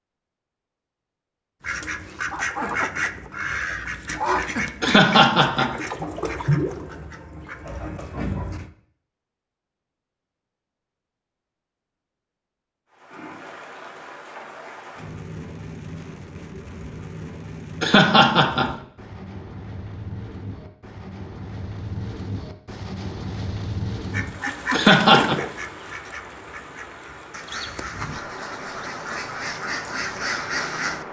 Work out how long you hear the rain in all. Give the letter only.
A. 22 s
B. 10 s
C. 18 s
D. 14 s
C.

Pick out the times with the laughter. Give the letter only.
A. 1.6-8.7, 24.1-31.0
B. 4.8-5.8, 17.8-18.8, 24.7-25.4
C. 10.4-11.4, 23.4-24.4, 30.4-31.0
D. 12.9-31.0
B.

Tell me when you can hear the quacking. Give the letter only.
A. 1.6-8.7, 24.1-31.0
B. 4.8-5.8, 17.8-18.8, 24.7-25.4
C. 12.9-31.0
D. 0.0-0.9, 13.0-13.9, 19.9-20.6
A.